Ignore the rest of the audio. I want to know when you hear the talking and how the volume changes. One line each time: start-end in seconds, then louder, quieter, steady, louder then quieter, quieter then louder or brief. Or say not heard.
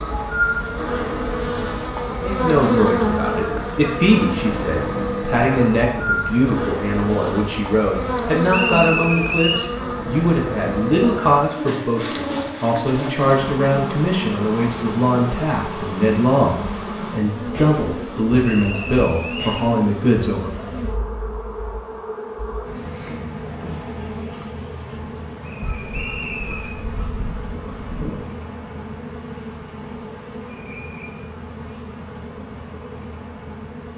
2.0-20.8 steady.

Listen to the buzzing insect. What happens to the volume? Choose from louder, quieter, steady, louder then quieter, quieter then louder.
quieter.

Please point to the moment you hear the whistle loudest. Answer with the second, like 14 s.
9 s.